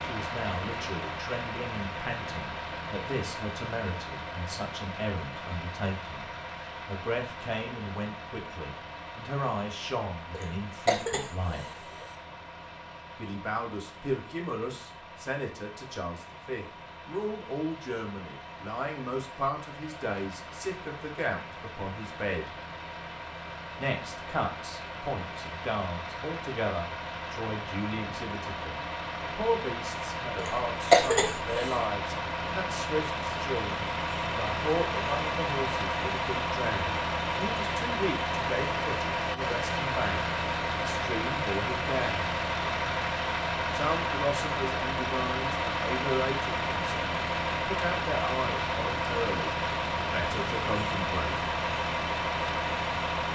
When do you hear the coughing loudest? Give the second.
31 s.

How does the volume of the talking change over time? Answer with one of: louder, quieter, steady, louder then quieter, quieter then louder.
steady.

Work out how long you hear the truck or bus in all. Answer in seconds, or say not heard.
53 s.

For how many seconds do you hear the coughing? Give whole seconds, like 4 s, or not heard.
3 s.